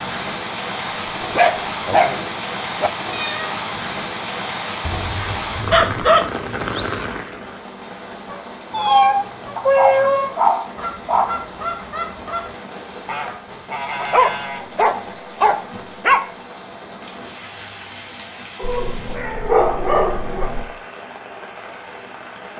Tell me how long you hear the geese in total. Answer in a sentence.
The geese can be heard for 7 seconds in total.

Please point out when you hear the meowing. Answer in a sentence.
You can hear the meowing from 3.1 to 3.6 s, from 8.7 to 10.2 s and from 18.6 to 20.6 s.